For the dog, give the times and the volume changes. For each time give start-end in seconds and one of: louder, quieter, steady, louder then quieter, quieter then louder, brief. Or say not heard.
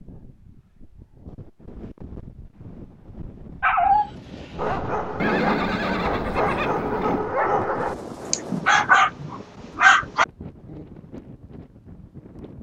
3.6-10.8 louder.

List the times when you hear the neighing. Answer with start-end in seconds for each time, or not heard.
5.2-7.2.